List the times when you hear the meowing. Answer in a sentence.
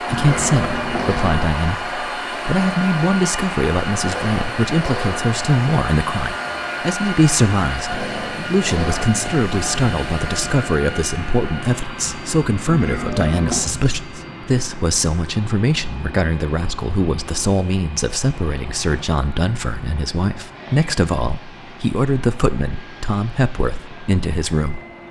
The meowing can be heard from 0.1 to 1.4 s and from 12.7 to 13.7 s.